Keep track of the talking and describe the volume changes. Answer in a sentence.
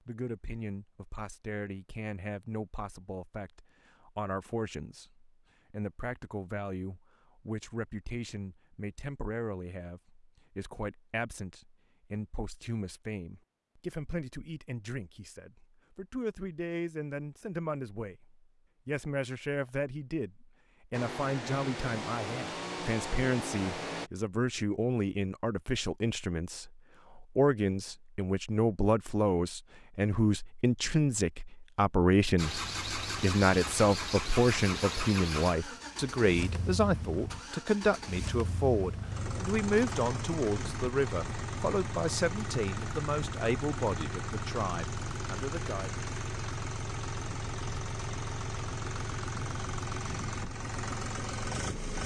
The volume of the talking goes up.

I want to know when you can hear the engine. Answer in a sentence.
You can hear the engine from 20.9 to 24.1 s and from 32.4 to 52.0 s.